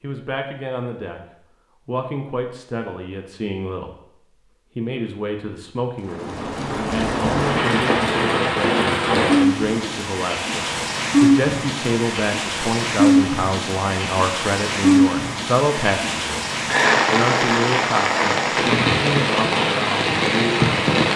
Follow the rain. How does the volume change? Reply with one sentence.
The volume of the rain stays about the same.